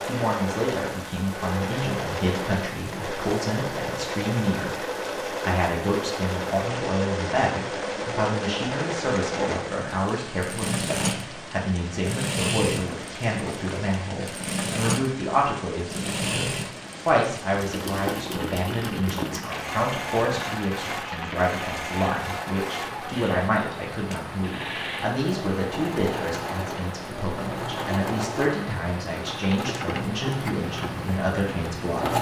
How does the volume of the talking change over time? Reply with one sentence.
The loudness of the talking stays about the same.